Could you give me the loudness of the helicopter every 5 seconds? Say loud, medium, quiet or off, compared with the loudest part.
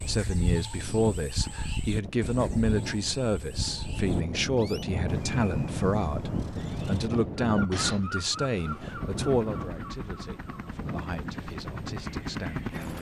off, medium, loud.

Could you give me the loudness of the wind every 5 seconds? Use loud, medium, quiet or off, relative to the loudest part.
loud, loud, medium.